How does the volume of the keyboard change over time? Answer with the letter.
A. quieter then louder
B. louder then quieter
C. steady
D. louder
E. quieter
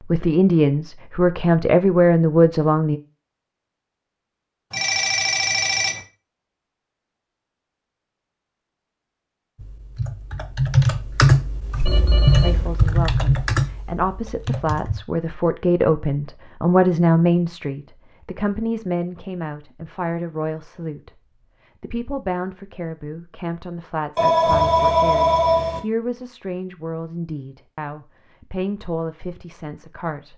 E.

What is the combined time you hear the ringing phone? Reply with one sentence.
The ringing phone can be heard for 4 seconds in total.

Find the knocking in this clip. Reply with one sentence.
The knocking can't be heard in this clip.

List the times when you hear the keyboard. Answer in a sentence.
You can hear the keyboard from 9.6 to 15.0 s.